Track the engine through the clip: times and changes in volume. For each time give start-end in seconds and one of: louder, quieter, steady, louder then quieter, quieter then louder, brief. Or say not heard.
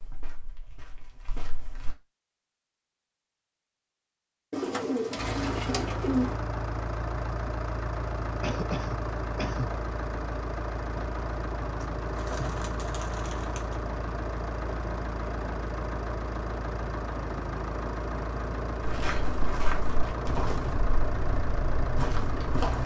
5.2-22.8 steady.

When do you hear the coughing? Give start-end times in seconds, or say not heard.
8.4-9.7.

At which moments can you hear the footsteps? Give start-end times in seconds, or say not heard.
0.0-1.9, 18.8-22.8.